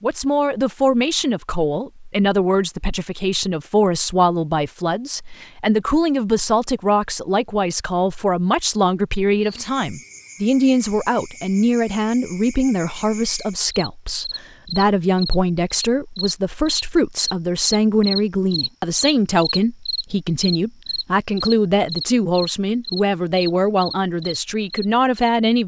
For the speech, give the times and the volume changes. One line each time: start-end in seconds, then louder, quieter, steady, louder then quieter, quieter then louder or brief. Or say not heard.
0.0-25.6 steady.